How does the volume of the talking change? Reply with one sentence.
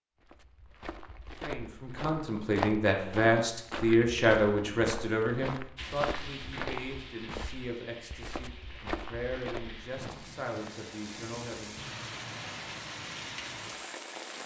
The loudness of the talking goes down.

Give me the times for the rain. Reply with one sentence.
You can hear the rain from 5.8 to 14.4 s.